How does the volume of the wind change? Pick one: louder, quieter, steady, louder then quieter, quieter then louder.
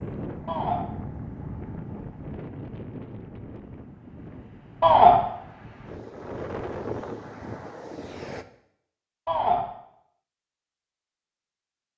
quieter then louder.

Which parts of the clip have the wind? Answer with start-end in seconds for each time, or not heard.
0.0-8.4.